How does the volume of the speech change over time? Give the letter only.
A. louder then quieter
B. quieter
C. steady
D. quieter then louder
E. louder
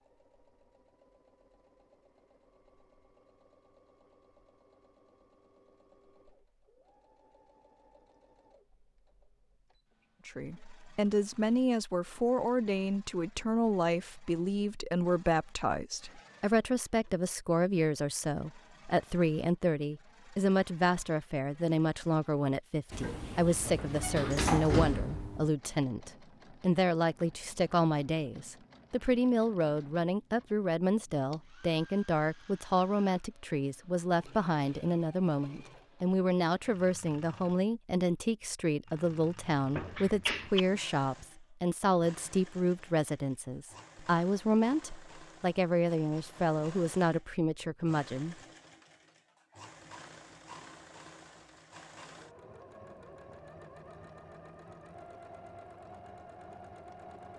C.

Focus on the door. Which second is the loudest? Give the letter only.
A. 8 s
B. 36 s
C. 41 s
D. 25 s
D.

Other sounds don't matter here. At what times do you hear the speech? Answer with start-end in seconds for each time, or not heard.
10.2-48.4.